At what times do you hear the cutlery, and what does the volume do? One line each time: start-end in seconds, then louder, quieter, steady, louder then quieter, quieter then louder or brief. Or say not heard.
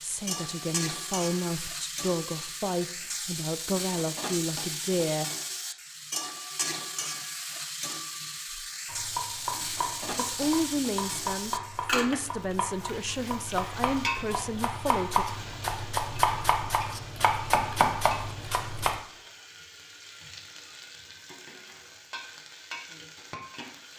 not heard.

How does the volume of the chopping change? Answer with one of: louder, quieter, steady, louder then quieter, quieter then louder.
louder.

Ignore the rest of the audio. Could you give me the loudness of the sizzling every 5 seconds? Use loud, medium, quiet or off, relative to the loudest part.
loud, loud, loud, medium, medium.